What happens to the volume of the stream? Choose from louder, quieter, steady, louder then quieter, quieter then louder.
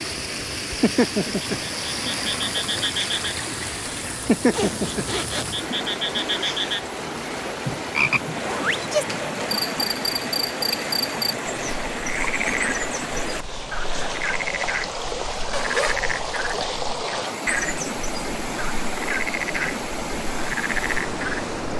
steady.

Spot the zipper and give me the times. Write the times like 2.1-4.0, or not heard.
4.5-5.5, 7.7-9.6, 15.5-16.1.